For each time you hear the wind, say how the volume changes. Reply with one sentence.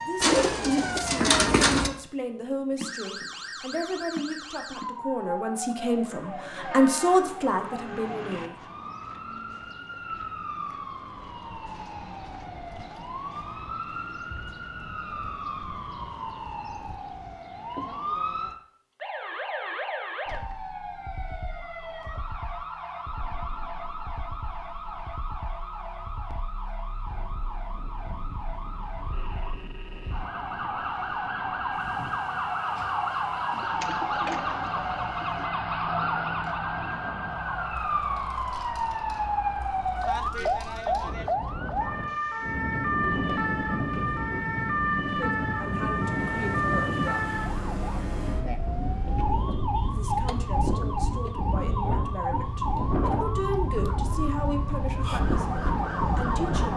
You can hear the wind from 27.7 to 56.7 s, getting louder.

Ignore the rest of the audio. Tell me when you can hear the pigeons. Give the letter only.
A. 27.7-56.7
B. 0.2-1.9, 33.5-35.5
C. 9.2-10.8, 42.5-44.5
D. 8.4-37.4
B.